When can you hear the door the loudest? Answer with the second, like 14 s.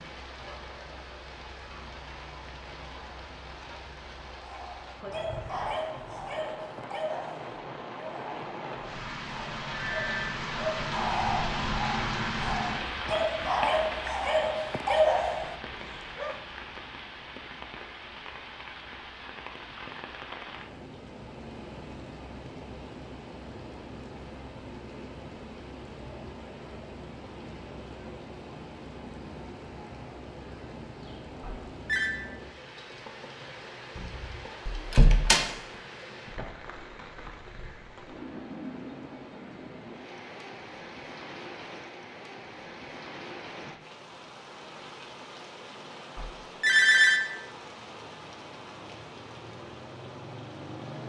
35 s.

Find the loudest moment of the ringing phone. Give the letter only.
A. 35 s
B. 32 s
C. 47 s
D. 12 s
C.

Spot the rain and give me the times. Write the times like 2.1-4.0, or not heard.
0.0-51.0.